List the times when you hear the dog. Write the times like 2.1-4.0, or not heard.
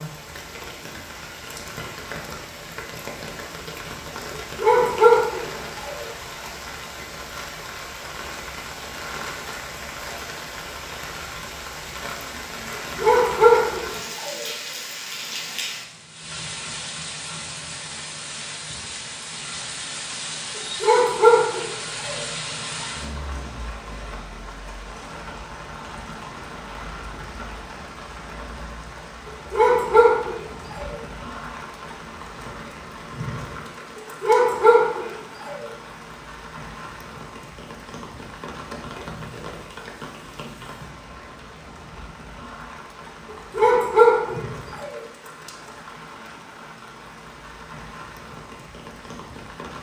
4.5-6.0, 12.9-14.4, 20.8-22.1, 29.5-30.9, 34.2-35.6, 43.5-45.0.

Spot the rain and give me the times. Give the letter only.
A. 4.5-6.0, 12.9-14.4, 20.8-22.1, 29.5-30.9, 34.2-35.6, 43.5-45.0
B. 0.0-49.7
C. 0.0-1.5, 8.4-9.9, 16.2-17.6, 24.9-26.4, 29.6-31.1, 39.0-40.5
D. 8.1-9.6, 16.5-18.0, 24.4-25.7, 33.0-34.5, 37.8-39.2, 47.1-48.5
B.